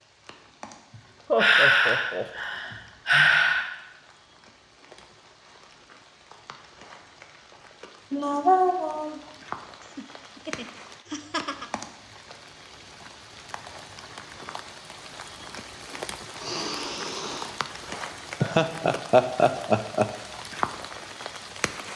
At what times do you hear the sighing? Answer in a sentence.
The sighing can be heard from 1.4 to 3.6 s, from 8.1 to 9.2 s and from 16.4 to 17.6 s.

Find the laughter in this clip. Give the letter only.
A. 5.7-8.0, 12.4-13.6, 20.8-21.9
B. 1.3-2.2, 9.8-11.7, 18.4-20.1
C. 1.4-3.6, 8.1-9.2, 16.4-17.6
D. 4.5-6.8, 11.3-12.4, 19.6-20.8
B.